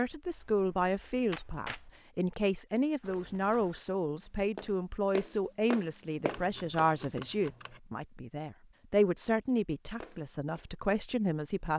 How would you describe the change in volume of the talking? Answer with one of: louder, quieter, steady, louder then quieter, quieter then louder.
steady.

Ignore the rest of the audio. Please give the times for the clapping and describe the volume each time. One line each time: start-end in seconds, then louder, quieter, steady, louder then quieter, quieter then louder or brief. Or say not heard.
not heard.